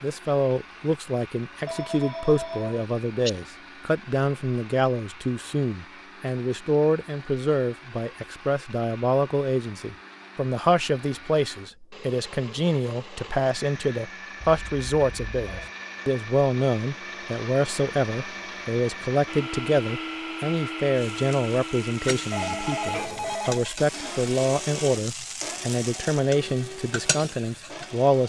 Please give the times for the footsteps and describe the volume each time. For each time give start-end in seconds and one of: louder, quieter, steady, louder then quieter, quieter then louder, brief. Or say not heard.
not heard.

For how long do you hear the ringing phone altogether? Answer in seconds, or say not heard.
4 s.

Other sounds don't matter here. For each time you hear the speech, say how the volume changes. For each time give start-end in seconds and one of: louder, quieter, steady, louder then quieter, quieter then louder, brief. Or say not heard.
0.0-28.2 steady.